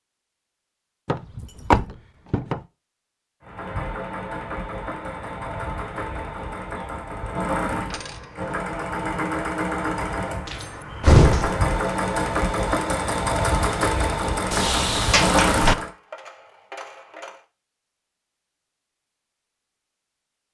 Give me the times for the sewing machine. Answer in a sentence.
The sewing machine can be heard from 3.4 to 15.9 s.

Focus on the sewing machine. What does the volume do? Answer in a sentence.
The volume of the sewing machine goes up.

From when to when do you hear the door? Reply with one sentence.
You can hear the door from 1.1 to 2.6 s, from 10.4 to 11.6 s and from 14.5 to 15.8 s.